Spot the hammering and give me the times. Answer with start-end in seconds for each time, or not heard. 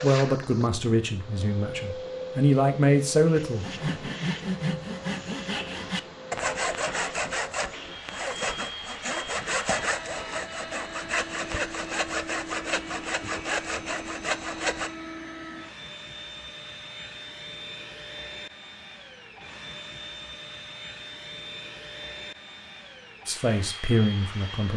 not heard.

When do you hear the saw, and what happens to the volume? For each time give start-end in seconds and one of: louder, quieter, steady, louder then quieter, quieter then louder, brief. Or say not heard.
3.6-14.9 steady.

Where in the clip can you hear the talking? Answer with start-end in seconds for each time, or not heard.
0.0-4.1, 23.2-24.7.